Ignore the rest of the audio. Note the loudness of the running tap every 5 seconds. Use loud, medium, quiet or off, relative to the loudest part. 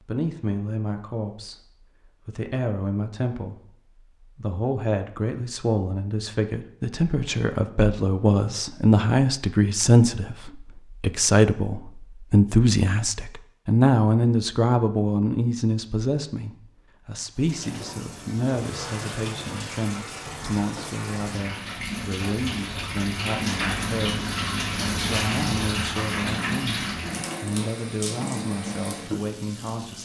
off, off, off, medium, loud, loud.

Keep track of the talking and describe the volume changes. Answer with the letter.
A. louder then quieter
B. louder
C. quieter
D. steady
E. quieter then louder
A.